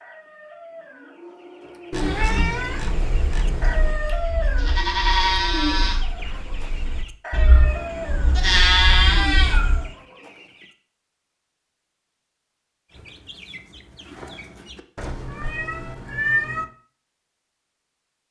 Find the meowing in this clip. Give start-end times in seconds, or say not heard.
1.9-4.0, 7.3-9.9, 14.9-16.6.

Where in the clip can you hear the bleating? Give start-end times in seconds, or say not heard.
2.0-9.9.